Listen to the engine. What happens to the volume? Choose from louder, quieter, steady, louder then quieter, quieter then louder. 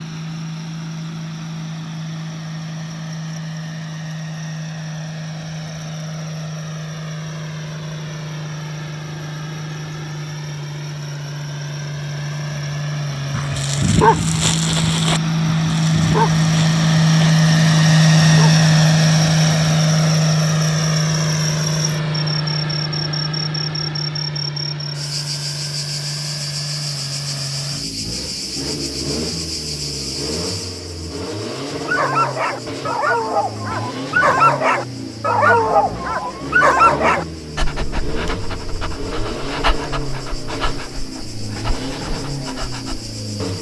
louder then quieter.